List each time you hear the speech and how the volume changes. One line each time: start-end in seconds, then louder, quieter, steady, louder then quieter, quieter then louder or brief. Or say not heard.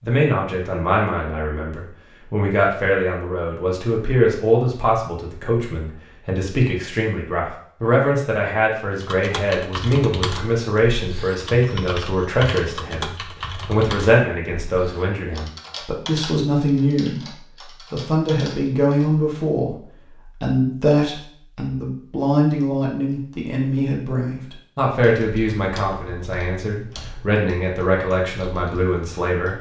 0.0-29.5 steady.